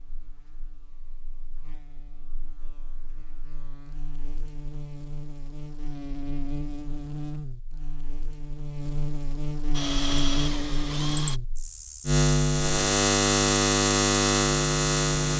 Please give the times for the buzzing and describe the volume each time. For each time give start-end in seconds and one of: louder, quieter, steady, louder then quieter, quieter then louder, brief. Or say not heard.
0.0-15.3 louder.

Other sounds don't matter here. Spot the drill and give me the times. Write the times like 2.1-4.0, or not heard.
9.8-11.4.